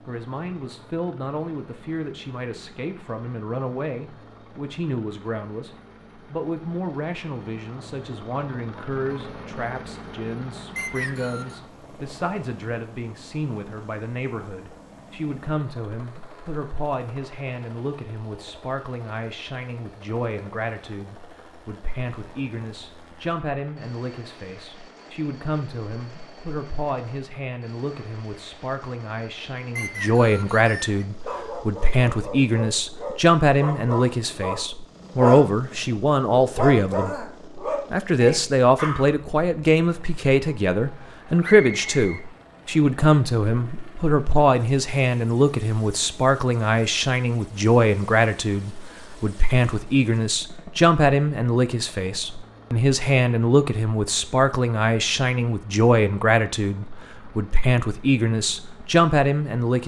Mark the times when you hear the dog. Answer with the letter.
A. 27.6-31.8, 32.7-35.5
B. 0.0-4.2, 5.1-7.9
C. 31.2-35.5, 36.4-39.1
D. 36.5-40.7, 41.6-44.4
C.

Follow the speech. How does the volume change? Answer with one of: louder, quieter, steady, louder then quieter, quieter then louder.
louder.